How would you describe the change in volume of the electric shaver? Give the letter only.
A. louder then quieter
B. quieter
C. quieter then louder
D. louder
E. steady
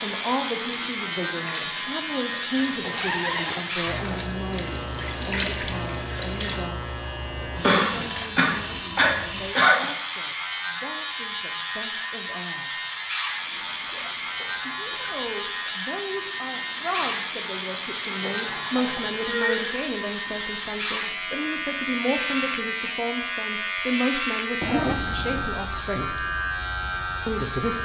E.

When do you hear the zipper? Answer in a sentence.
You can hear the zipper from 2.5 to 3.7 s, from 13.8 to 15.5 s and from 24.6 to 25.5 s.